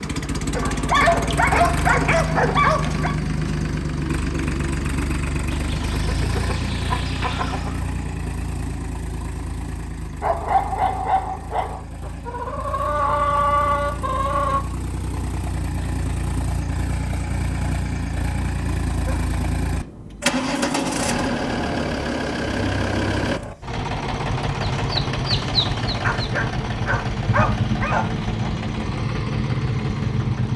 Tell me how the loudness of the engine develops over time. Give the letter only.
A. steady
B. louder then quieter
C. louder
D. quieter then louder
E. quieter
D.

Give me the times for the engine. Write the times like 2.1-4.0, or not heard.
0.0-30.5.